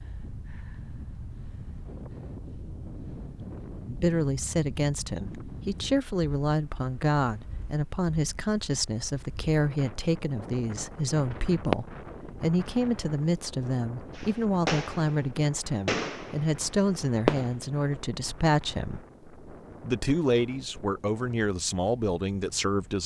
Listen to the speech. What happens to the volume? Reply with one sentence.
The volume of the speech stays about the same.